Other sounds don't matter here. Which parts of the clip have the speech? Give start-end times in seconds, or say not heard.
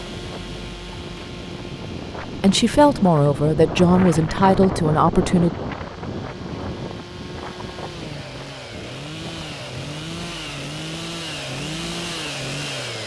2.4-5.5.